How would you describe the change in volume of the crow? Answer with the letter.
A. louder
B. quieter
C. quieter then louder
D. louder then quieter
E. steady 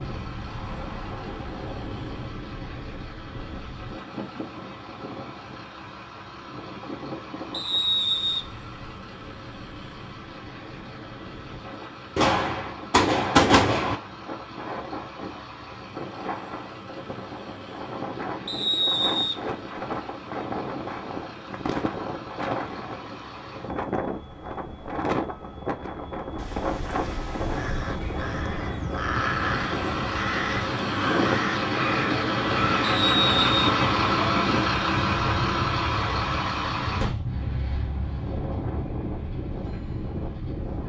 A.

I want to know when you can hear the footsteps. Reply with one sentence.
The footsteps can't be heard in this clip.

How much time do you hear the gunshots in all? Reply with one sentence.
You can hear the gunshots for 2 seconds altogether.